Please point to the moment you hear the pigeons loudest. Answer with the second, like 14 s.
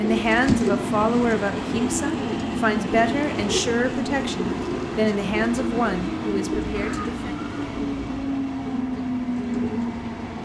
1 s.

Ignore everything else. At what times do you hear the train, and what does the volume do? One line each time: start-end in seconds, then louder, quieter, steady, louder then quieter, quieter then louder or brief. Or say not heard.
0.0-10.4 steady.